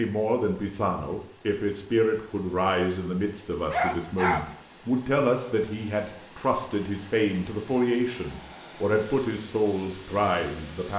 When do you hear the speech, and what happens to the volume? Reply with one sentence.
The speech can be heard from 0.0 to 10.9 s, at a steady volume.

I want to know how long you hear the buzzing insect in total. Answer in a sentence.
You can't hear the buzzing insect here.